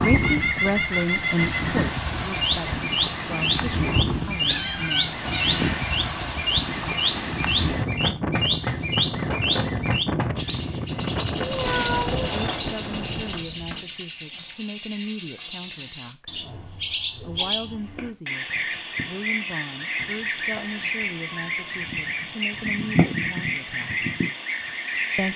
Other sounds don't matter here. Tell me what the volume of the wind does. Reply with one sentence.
The volume of the wind stays about the same.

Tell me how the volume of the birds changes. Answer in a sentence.
The loudness of the birds stays about the same.